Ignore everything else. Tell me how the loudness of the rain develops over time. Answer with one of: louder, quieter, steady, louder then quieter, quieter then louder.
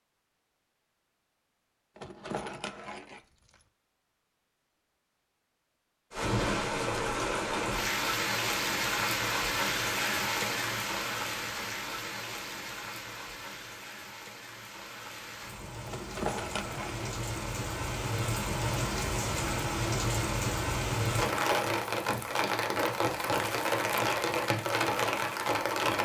quieter then louder.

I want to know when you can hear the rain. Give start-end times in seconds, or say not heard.
6.1-26.0.